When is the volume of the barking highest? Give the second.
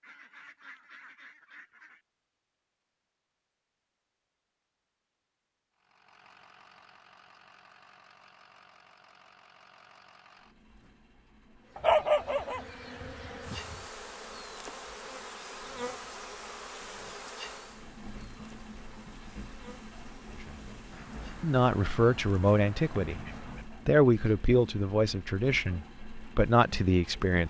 12 s.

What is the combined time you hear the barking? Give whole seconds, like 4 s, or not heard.
2 s.